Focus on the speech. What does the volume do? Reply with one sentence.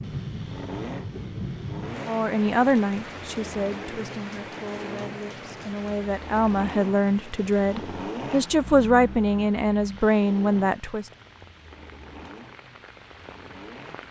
The volume of the speech goes down, then up.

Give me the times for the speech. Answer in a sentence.
You can hear the speech from 2.0 to 11.1 s.